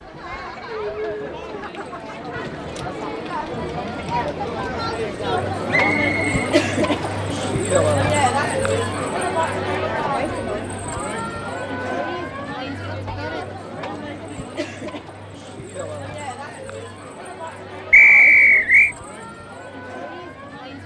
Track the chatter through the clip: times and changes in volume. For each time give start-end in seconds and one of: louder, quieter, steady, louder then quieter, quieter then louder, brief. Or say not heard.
0.0-20.8 louder then quieter.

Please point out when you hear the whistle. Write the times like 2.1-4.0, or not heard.
5.7-7.2, 17.9-18.9.